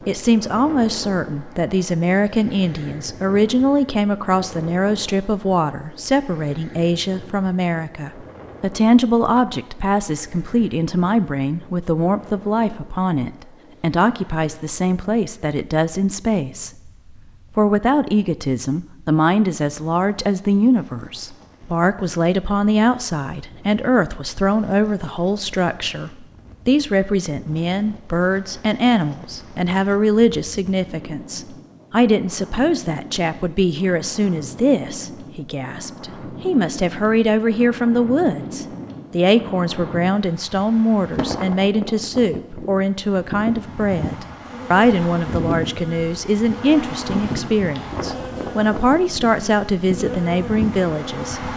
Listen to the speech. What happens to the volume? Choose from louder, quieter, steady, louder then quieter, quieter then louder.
steady.